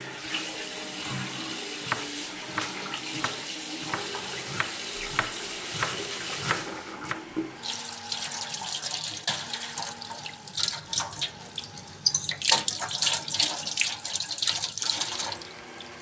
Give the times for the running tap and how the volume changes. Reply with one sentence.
You can hear the running tap from 0.0 to 15.9 s, getting louder.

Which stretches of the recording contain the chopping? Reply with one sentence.
The chopping can be heard from 1.7 to 7.2 s.